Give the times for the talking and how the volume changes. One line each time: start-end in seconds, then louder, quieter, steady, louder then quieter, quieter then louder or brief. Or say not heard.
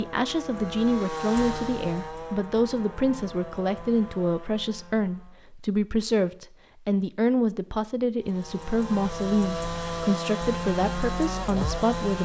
0.0-12.2 steady.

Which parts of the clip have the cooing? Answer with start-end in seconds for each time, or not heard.
not heard.